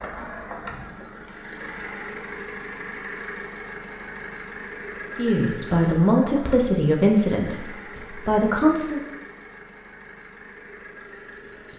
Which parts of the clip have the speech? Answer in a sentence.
The speech can be heard from 5.2 to 9.0 s.